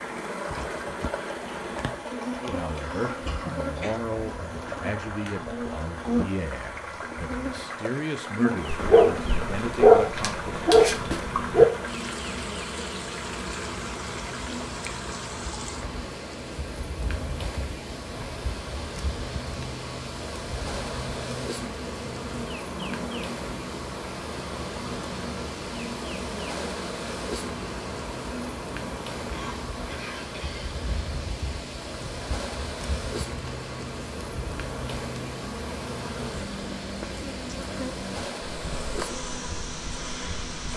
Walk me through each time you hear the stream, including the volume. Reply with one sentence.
The stream can be heard from 0.0 to 40.7 s, at a steady volume.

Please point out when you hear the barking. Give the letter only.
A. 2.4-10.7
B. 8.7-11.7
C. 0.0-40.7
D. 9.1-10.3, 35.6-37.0
B.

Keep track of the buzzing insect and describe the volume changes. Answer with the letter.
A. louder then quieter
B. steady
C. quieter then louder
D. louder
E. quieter
B.